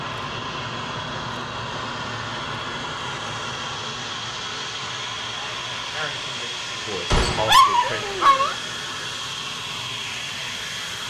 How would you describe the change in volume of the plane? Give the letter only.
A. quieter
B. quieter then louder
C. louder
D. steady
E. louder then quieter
D.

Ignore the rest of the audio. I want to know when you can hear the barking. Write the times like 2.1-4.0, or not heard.
7.5-8.6.